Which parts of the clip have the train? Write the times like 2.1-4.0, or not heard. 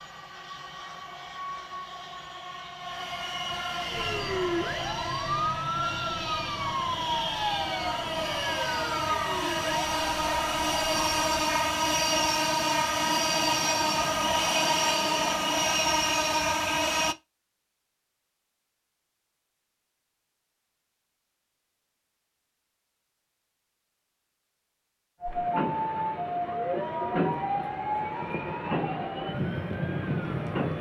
0.0-17.1, 25.2-30.7.